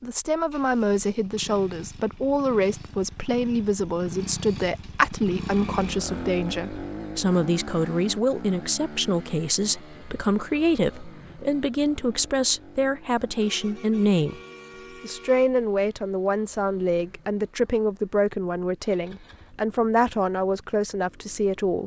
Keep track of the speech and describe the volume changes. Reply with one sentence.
The volume of the speech stays about the same.